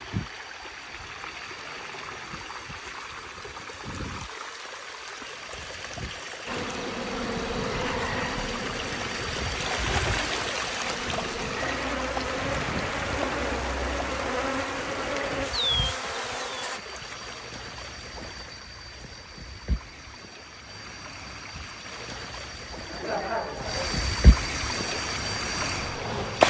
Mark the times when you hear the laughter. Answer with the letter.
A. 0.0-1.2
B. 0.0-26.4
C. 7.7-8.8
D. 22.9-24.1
D.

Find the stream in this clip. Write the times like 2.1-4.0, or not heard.
0.0-26.4.